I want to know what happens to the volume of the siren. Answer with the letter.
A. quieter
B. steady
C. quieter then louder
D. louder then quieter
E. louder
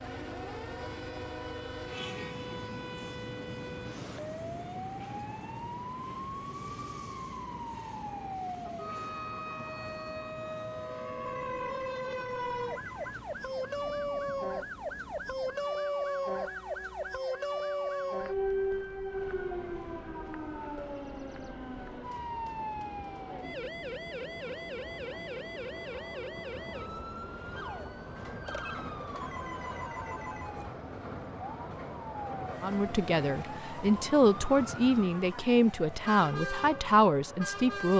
D.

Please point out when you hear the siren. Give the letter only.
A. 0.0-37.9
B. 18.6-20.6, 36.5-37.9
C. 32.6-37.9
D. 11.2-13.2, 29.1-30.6
A.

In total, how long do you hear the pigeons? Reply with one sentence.
You can't hear the pigeons here.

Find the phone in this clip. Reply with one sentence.
The phone can be heard from 11.2 to 13.2 s and from 29.1 to 30.6 s.